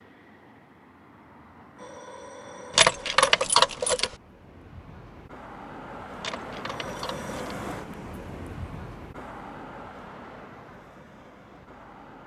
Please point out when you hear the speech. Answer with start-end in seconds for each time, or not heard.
not heard.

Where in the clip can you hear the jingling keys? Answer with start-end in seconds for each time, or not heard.
2.8-4.2, 6.2-7.5.